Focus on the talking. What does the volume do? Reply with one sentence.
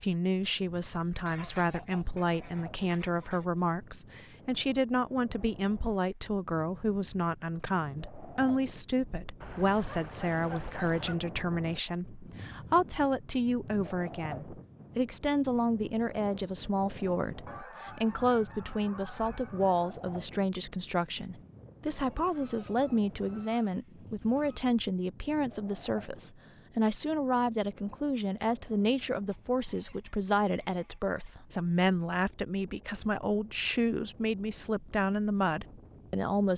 The loudness of the talking stays about the same.